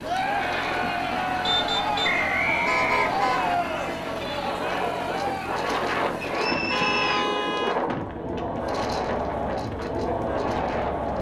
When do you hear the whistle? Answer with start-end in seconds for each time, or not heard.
2.0-3.5, 6.2-7.3.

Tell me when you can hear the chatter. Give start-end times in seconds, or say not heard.
0.0-11.1.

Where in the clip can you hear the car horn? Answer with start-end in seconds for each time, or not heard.
1.4-3.5, 6.5-7.8.